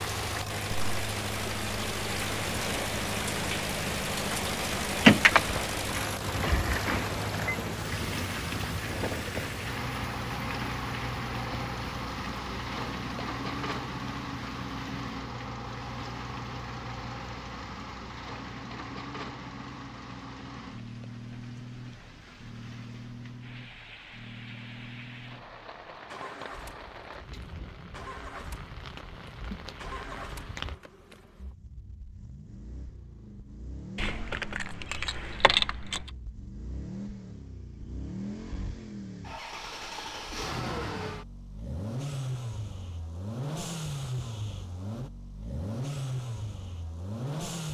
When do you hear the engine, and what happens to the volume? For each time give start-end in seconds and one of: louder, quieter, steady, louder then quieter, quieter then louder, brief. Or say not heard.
0.0-47.6 quieter then louder.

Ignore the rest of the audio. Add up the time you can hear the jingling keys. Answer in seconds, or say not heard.
5 s.